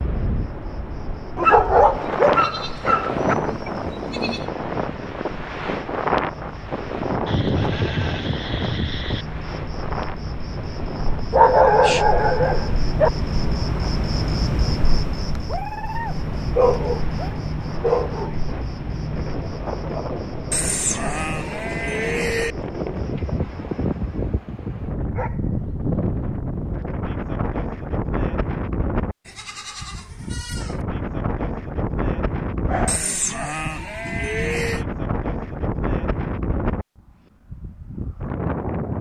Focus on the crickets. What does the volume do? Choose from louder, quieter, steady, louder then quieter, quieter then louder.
louder then quieter.